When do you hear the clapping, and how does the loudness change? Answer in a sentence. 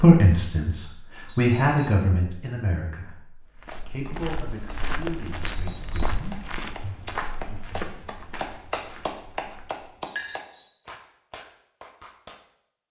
The clapping can be heard from 3.7 to 12.4 s, getting louder then quieter.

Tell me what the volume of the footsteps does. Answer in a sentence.
The loudness of the footsteps goes down.